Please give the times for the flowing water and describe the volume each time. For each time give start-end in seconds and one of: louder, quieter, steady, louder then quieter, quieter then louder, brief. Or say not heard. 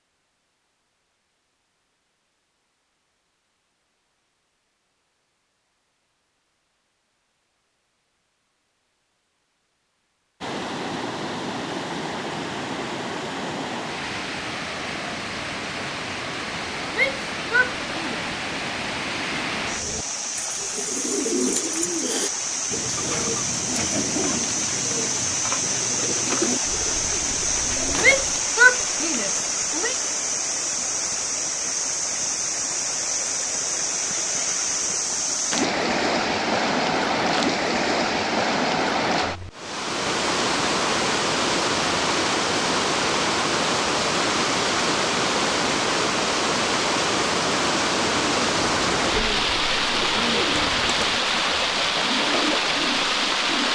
10.4-53.6 louder.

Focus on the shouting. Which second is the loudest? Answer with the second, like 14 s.
29 s.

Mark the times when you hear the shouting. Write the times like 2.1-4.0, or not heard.
16.9-18.2, 28.0-29.9.